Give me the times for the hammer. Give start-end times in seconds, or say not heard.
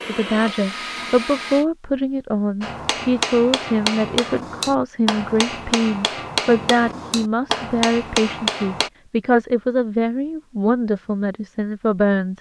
2.6-8.9.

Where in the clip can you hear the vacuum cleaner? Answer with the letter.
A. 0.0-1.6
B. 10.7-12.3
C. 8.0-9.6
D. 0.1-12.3
A.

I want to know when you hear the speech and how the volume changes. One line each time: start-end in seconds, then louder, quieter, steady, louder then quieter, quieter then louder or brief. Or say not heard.
0.1-12.3 steady.